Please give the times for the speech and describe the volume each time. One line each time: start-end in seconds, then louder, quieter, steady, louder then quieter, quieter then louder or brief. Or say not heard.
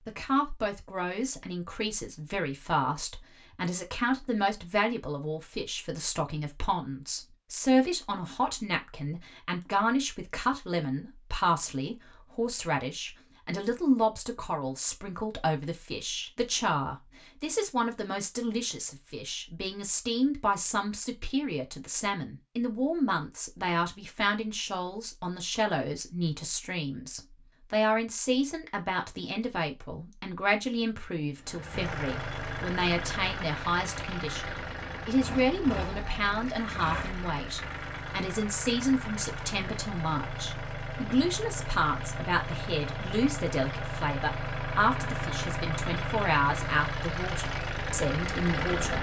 0.1-34.5 steady
35.0-48.9 steady.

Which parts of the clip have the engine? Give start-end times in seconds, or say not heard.
31.4-48.9.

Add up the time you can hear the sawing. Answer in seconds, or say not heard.
not heard.